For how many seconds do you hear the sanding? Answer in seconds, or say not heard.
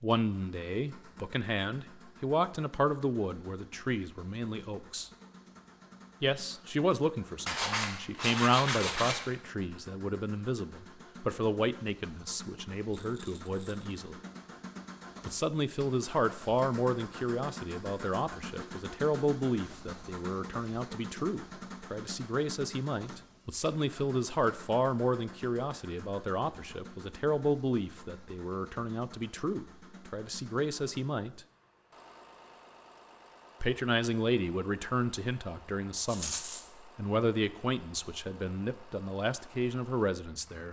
2 s.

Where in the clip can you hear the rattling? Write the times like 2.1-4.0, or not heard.
12.9-13.8, 36.0-36.6.